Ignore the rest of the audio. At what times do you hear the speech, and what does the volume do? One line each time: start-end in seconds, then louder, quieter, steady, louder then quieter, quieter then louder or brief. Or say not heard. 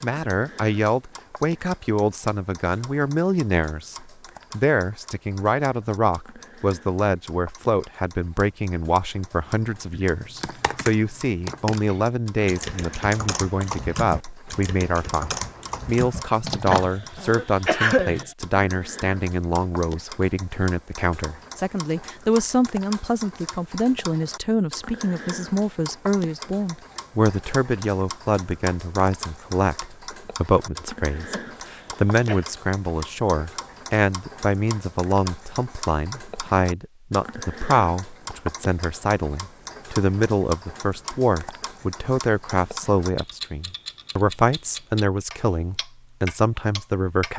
0.0-47.3 steady.